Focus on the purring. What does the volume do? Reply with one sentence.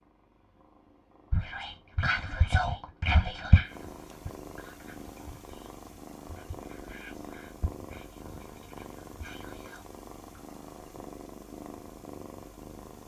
The loudness of the purring goes up.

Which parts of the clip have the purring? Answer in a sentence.
You can hear the purring from 0.0 to 13.0 s.